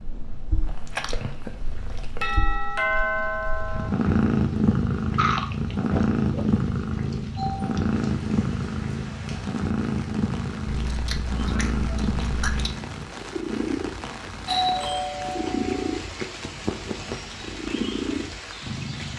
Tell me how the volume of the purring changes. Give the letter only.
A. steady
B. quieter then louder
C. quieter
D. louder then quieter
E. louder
D.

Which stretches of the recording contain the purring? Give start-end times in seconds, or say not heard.
0.0-19.1.